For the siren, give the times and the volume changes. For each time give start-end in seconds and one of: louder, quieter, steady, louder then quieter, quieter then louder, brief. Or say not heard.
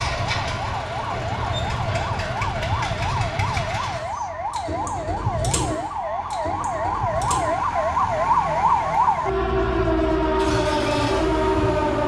0.0-12.0 louder.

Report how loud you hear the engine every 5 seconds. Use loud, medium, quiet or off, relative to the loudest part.
loud, loud, medium.